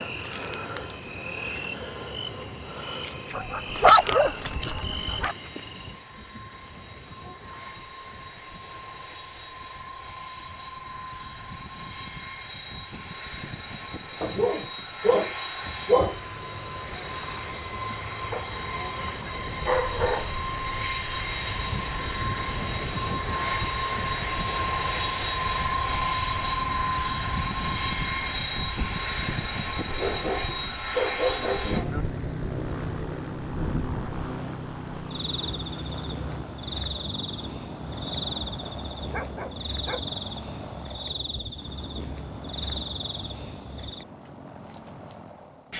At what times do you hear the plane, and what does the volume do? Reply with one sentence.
The plane can be heard from 0.0 to 45.7 s, getting louder then quieter.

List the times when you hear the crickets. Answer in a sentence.
You can hear the crickets from 0.0 to 45.7 s.